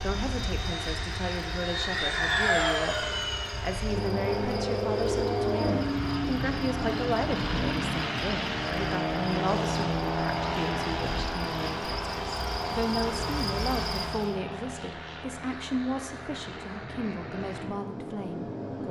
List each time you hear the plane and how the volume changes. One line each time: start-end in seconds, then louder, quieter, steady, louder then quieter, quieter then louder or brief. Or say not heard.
0.0-18.8 quieter.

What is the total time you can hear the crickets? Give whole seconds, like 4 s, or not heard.
14 s.